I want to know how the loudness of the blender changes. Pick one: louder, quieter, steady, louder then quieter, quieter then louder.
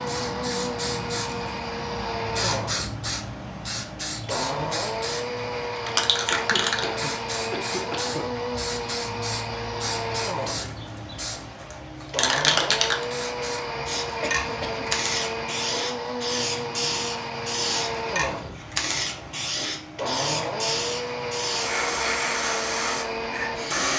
steady.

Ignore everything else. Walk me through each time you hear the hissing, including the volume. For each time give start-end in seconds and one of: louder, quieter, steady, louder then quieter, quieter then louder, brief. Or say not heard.
0.0-23.9 steady.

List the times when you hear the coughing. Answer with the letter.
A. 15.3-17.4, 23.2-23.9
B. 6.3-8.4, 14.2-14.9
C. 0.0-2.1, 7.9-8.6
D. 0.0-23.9
B.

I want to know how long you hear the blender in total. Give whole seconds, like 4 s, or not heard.
24 s.